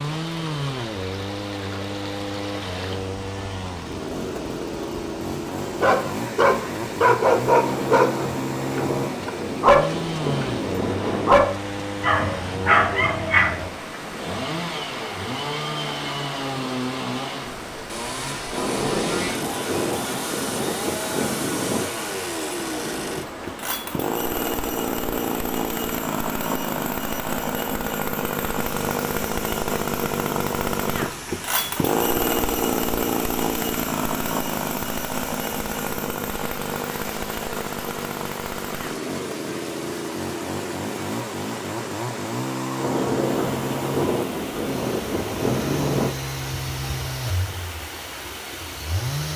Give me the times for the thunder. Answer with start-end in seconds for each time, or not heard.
7.6-11.4, 18.5-21.9, 42.8-46.1.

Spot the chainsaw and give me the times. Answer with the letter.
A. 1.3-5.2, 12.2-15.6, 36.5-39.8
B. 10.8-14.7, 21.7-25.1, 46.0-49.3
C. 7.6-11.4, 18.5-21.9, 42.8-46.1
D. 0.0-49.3
D.